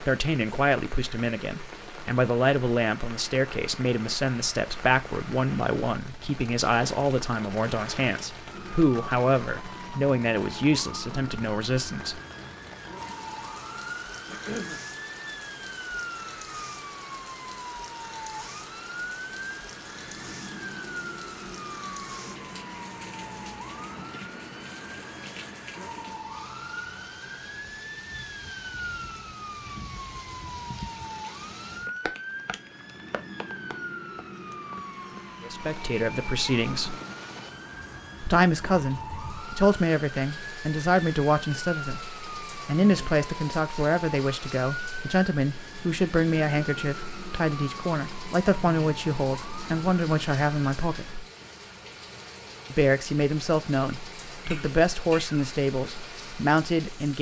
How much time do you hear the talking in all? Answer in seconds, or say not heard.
31 s.